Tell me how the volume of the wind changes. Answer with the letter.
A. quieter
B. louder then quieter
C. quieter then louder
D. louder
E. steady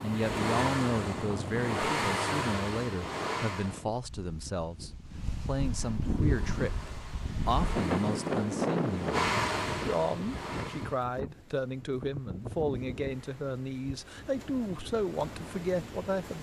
B.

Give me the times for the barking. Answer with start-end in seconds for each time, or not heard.
not heard.